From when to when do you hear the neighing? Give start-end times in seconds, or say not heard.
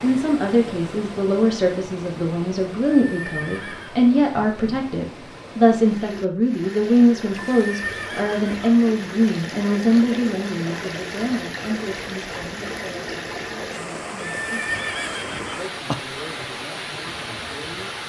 3.1-4.0, 7.5-8.7, 14.2-15.9.